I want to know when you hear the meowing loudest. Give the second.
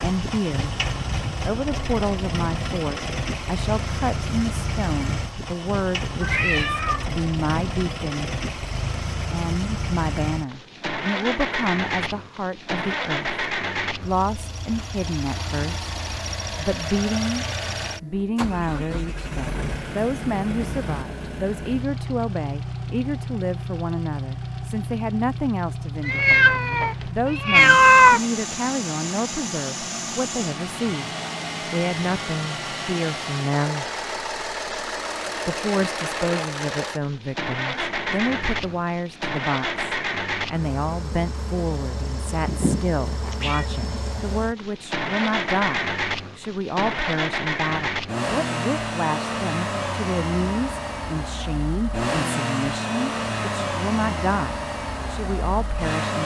28 s.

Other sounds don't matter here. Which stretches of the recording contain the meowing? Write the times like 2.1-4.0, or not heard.
6.2-7.0, 26.1-28.2, 42.5-43.6.